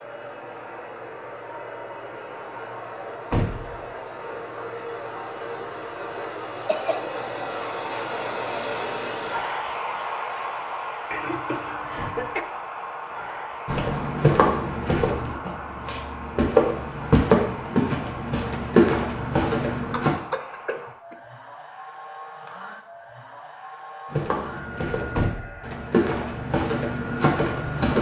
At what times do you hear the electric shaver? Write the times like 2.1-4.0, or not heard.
not heard.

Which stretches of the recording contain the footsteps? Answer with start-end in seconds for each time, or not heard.
13.7-20.1, 24.1-27.9.